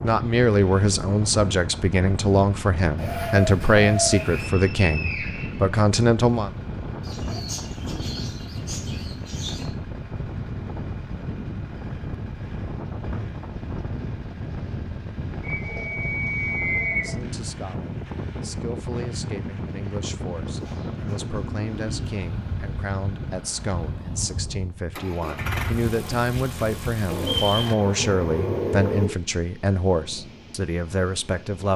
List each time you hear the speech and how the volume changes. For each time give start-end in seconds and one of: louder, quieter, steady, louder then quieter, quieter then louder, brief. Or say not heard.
0.0-6.5 steady
16.9-31.7 louder.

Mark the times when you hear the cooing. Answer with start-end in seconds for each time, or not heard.
3.0-4.5, 7.0-9.7, 15.6-17.2, 20.4-22.2, 27.1-29.1.